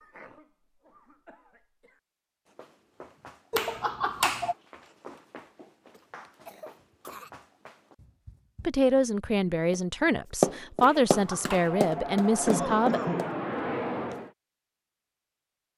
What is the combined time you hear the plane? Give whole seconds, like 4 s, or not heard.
3 s.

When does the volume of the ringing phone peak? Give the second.
4 s.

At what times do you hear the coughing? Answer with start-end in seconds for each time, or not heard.
0.0-2.0, 6.0-7.3, 12.4-13.4.